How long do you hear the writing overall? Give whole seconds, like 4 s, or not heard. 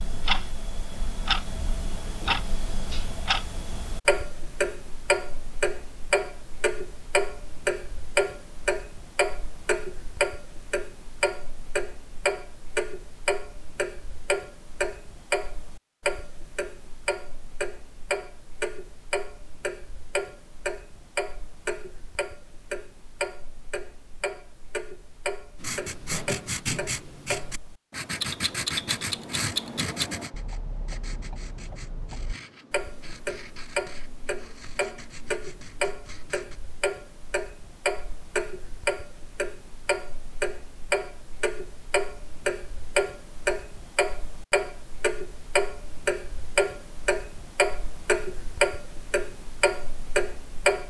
11 s.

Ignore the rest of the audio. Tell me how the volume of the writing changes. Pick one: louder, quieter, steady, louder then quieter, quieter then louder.
quieter.